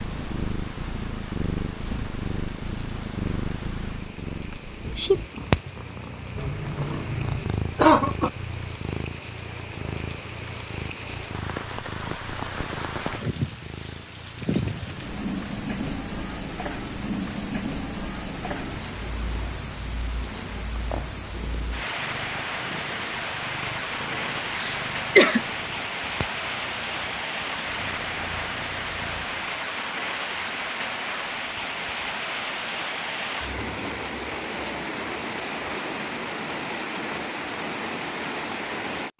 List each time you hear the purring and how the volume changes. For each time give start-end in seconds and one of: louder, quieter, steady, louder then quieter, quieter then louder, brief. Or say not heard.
0.0-29.4 quieter.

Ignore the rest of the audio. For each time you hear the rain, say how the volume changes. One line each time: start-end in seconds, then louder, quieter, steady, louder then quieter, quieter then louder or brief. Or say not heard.
0.0-39.1 louder.